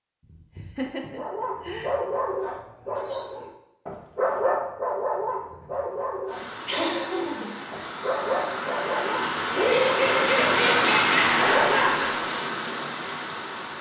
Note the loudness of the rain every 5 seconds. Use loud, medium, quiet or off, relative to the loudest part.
off, medium, loud.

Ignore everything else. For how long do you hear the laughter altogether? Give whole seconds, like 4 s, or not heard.
5 s.